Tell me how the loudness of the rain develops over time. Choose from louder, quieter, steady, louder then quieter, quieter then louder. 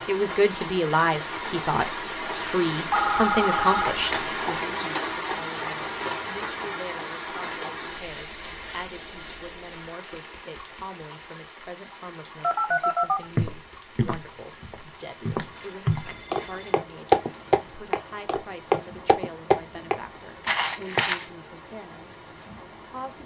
quieter.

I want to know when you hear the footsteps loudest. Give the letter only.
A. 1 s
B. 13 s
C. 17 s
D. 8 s
C.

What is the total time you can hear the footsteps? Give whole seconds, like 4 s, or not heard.
8 s.